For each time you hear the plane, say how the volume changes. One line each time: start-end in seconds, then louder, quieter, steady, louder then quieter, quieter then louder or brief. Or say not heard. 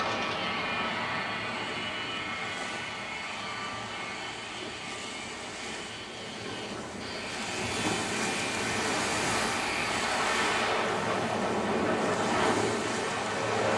0.0-13.7 quieter then louder.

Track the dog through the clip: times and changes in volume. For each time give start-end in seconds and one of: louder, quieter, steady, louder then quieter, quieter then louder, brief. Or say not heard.
not heard.